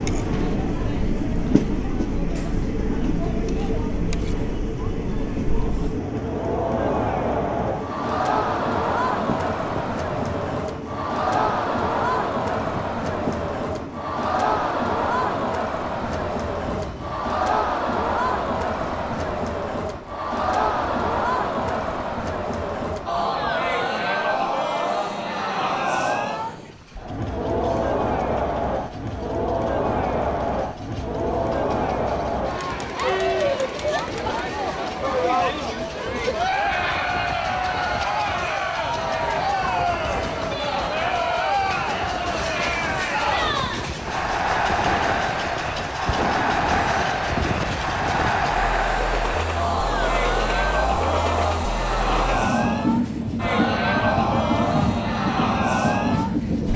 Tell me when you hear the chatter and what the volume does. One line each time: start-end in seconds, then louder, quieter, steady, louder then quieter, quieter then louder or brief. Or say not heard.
0.0-56.7 steady.